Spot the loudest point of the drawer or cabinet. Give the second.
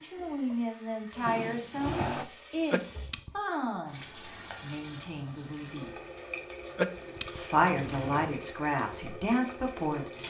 2 s.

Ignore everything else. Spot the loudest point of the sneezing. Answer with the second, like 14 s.
7 s.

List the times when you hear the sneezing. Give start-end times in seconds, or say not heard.
2.7-3.3, 6.8-7.4.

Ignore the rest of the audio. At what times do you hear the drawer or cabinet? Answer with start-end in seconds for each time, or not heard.
1.2-2.2, 7.6-8.3.